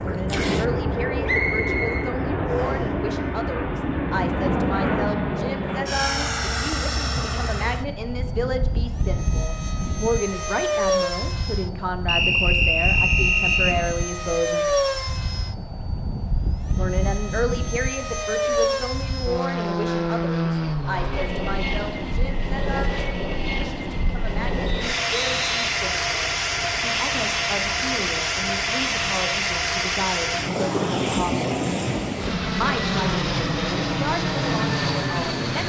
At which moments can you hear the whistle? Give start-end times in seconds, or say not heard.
1.2-2.8, 12.1-13.8, 24.6-25.6.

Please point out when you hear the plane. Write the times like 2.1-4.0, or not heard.
0.0-35.6.